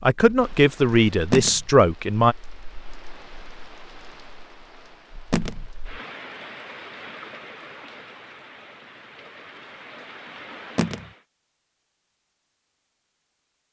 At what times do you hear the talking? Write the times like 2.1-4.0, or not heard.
0.0-2.4.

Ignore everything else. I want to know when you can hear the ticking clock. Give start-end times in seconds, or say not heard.
not heard.